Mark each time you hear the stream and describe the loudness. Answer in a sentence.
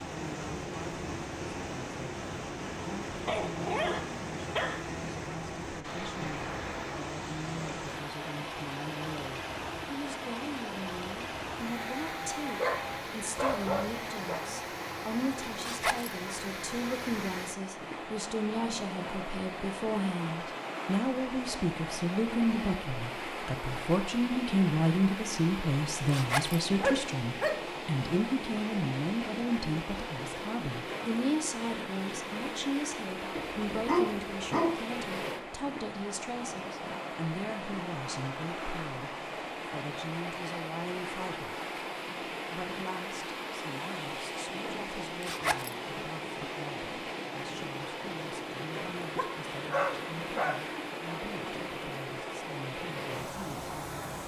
You can hear the stream from 0.0 to 54.2 s, at a steady volume.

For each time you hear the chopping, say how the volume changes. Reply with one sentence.
The chopping can't be heard in this clip.